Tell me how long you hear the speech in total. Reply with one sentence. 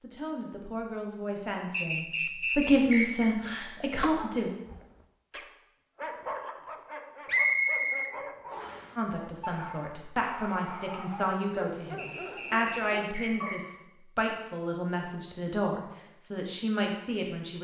You can hear the speech for 13 seconds altogether.